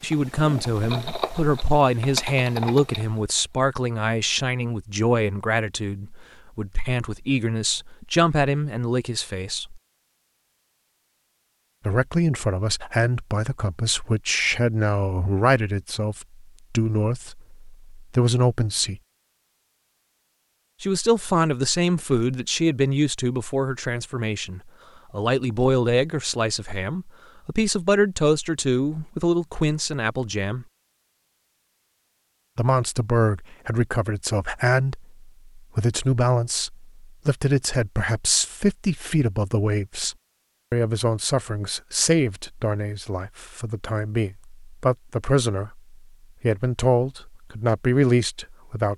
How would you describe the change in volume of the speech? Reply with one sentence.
The volume of the speech stays about the same.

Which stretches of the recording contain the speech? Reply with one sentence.
You can hear the speech from 0.0 to 9.8 s, from 11.8 to 19.0 s, from 20.8 to 30.6 s and from 32.5 to 48.9 s.